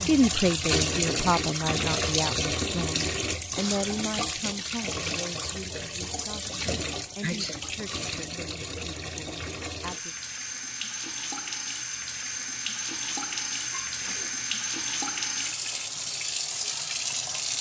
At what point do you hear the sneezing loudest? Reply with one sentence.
The volume of the sneezing peaks at 7 seconds.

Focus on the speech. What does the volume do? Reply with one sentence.
The volume of the speech goes down.